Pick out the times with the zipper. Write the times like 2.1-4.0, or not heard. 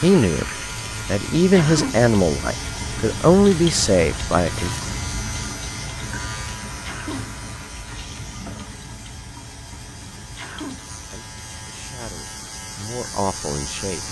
not heard.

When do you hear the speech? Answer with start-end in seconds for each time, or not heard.
0.0-4.8, 11.1-14.0.